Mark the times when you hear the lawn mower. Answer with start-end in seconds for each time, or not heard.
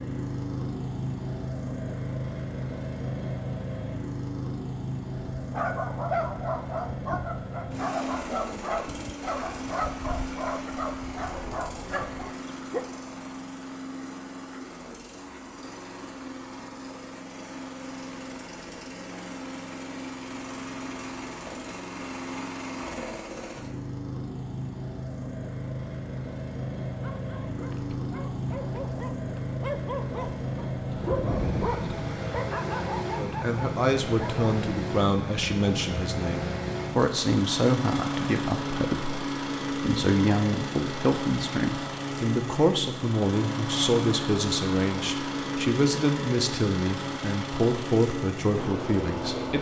0.0-49.5.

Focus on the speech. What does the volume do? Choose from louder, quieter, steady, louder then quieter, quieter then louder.
steady.